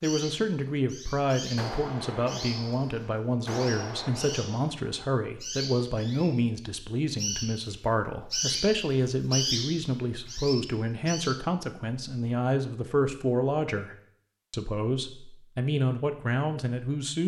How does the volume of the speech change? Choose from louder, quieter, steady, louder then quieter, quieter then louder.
steady.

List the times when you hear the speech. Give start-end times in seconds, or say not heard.
0.0-17.2.